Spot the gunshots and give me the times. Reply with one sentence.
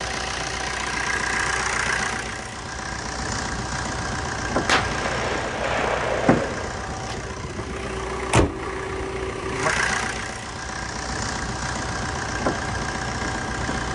You can hear the gunshots from 4.7 to 7.2 s.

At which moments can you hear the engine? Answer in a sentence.
The engine can be heard from 0.0 to 13.8 s.